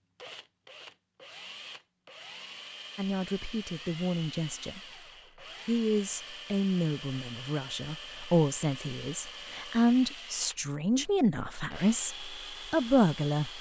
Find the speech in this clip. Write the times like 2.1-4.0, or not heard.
3.0-4.8, 5.7-13.5.